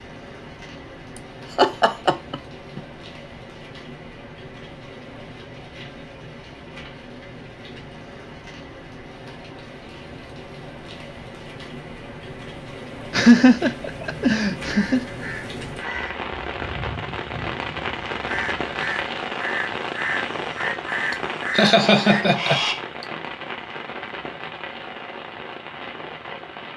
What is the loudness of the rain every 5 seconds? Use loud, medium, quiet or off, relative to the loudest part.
medium, medium, medium, loud, loud, medium.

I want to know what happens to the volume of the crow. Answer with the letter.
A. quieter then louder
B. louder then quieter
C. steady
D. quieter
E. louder
E.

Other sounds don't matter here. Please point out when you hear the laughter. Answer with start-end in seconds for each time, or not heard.
1.6-2.8, 13.1-15.1, 21.1-23.1.